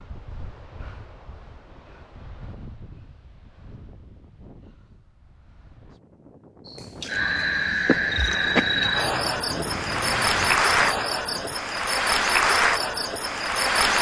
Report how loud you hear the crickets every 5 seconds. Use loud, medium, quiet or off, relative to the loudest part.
off, loud, loud.